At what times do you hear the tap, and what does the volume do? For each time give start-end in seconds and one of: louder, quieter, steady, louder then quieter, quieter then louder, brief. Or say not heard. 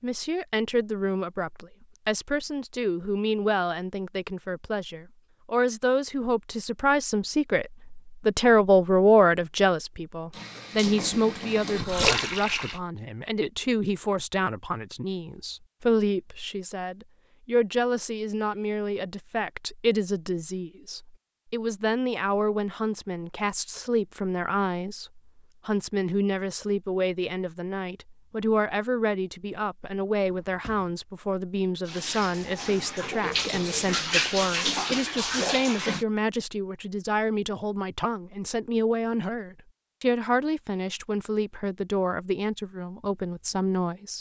10.3-12.8 brief
31.9-36.0 louder.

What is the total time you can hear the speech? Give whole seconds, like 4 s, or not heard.
44 s.